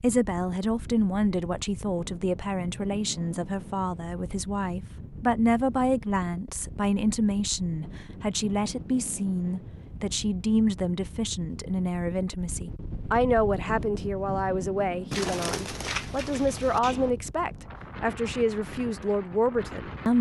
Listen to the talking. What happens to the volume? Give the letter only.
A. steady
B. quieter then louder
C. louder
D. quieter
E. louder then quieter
A.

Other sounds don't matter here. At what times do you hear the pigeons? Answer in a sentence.
The pigeons can be heard from 15.1 to 17.1 s.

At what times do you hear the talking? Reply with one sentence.
You can hear the talking from 0.0 to 20.1 s.